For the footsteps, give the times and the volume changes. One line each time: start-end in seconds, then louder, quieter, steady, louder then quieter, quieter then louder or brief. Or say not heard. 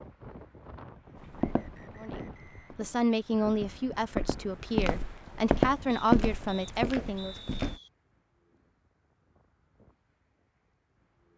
1.2-7.8 louder then quieter.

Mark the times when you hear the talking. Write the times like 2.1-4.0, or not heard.
2.0-7.3.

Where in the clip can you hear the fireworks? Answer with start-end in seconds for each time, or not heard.
not heard.